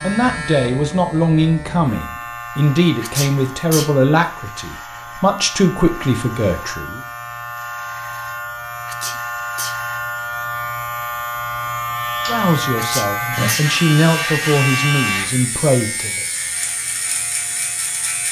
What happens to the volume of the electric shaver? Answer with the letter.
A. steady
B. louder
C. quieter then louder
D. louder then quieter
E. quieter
B.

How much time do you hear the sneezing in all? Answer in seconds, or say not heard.
3 s.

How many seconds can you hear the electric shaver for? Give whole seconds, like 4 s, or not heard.
18 s.